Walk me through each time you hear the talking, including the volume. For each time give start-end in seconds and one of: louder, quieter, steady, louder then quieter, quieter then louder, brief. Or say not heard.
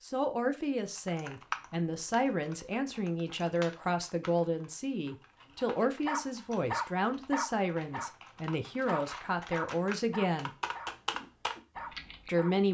0.0-10.5 steady
12.2-12.7 brief.